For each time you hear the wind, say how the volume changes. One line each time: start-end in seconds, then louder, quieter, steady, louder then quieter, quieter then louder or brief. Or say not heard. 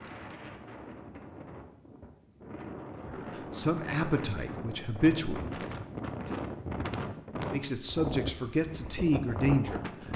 0.0-10.1 louder.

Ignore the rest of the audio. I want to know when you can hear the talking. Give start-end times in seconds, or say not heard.
3.0-5.5, 7.5-9.8.